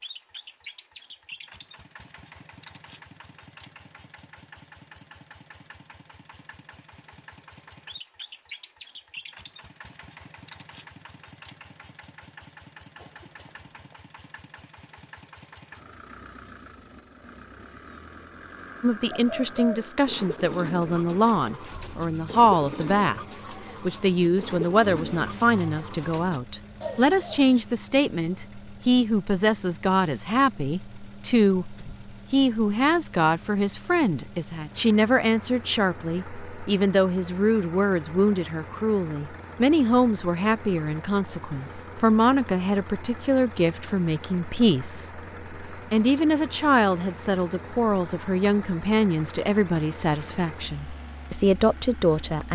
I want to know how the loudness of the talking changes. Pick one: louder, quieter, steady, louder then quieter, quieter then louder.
steady.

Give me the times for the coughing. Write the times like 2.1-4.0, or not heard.
12.9-14.1.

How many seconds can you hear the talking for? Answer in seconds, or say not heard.
34 s.